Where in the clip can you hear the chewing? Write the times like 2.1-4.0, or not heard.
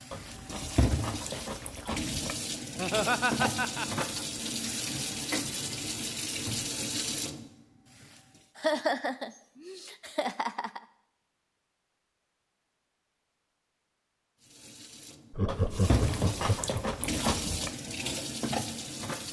0.1-2.4, 15.4-17.8.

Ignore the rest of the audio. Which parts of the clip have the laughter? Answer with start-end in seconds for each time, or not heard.
2.8-4.2, 8.6-10.8, 15.3-16.8.